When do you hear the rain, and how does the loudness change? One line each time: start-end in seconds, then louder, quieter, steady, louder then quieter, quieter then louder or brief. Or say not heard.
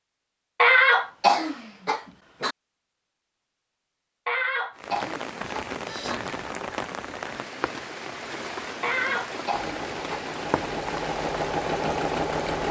4.8-12.6 steady.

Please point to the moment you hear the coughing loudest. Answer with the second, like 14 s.
1 s.